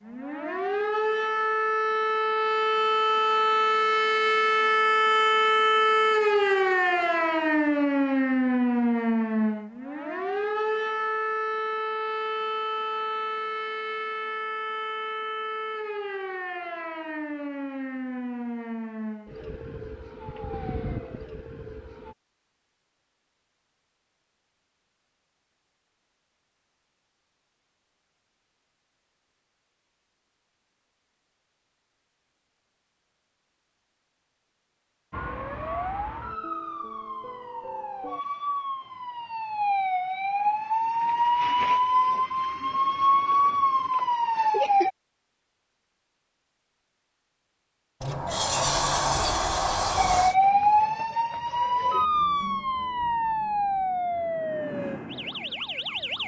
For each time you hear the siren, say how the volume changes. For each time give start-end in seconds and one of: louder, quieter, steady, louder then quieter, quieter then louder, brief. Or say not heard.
0.0-22.1 quieter
35.1-44.9 louder
50.0-56.2 quieter.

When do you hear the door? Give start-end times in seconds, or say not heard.
48.0-50.4.